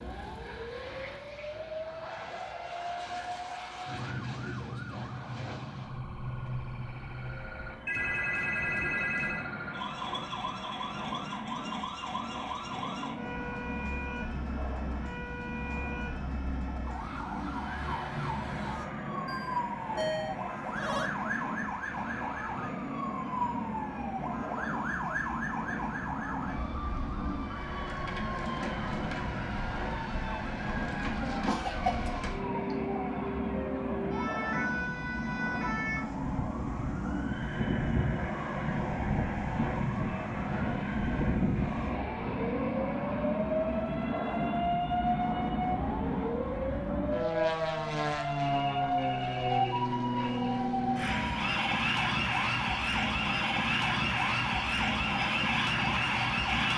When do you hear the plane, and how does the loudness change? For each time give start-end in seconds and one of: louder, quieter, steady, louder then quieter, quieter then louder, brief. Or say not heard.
0.0-56.7 louder.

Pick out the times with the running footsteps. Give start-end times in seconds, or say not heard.
not heard.